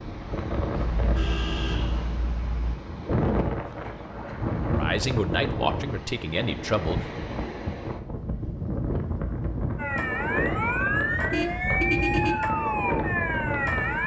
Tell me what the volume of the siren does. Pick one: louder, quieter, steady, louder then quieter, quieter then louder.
steady.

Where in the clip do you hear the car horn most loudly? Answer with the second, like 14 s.
12 s.